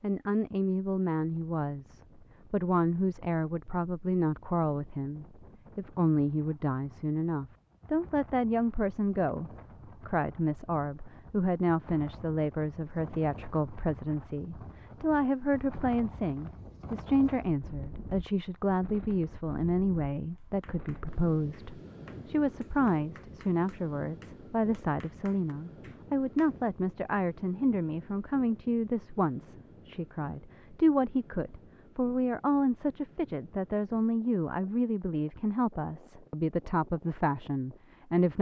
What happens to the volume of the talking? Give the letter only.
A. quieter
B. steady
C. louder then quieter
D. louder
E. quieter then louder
B.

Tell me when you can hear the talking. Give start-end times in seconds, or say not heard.
0.0-38.3.